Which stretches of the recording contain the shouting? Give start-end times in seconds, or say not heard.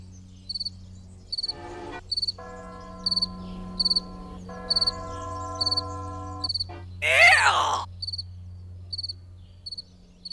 7.0-7.8.